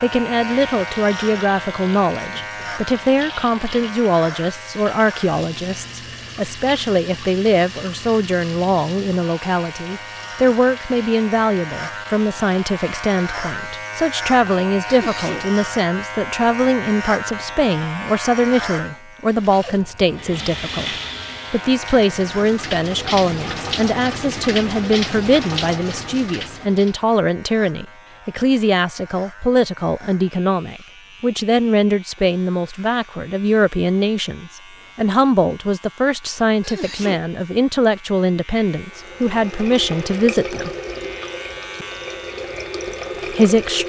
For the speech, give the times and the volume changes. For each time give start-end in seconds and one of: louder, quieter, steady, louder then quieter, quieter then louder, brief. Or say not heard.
0.0-40.7 steady
43.3-43.8 brief.